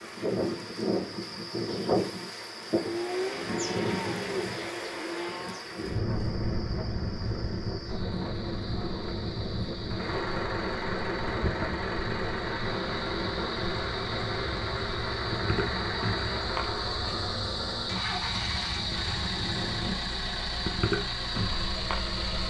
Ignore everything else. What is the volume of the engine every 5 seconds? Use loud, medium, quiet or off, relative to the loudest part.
quiet, quiet, loud, loud, loud.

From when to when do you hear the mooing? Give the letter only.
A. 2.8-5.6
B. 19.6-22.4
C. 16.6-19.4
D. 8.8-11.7
A.